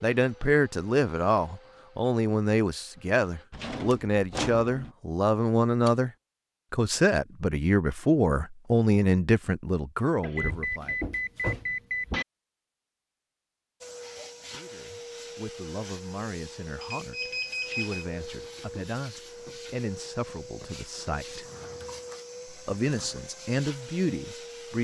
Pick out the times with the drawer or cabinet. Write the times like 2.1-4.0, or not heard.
3.5-5.0, 10.4-12.2, 21.4-23.2.